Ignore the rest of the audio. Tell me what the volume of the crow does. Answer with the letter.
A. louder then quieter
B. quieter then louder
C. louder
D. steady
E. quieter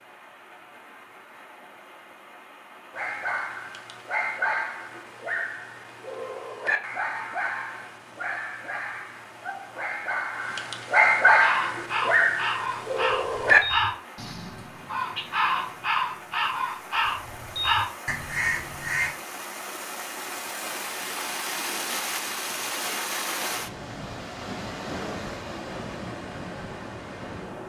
D.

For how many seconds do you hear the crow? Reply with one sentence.
You can hear the crow for 8 seconds altogether.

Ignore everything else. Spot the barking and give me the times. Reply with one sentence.
You can hear the barking from 2.9 to 13.6 s.